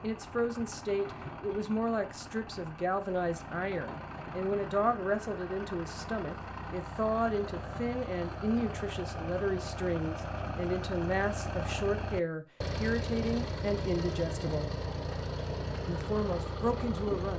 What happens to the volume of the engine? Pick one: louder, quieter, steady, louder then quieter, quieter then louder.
louder.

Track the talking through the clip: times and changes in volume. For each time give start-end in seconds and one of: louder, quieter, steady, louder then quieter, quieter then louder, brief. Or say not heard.
0.0-14.7 steady
15.8-17.3 brief.